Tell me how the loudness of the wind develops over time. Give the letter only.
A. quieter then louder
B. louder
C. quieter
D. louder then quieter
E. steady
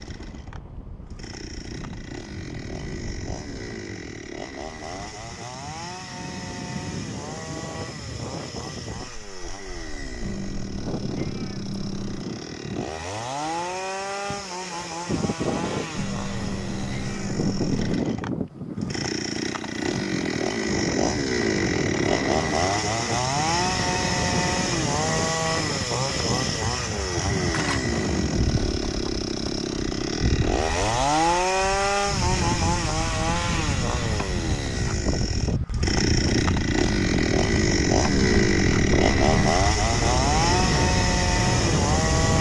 B.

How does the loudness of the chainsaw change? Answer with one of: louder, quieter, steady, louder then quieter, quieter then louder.
louder.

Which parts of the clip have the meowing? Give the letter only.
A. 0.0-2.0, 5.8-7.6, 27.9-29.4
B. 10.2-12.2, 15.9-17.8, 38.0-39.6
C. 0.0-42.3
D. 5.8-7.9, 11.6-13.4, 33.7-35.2
B.